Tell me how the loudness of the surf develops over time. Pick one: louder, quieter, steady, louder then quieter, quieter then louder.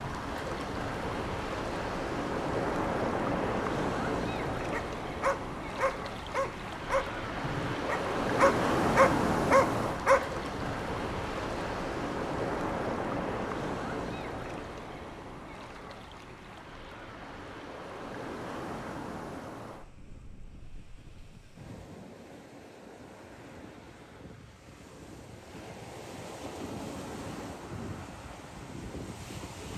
quieter.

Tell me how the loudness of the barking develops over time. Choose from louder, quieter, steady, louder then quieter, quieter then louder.
quieter then louder.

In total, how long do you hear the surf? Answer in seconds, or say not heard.
30 s.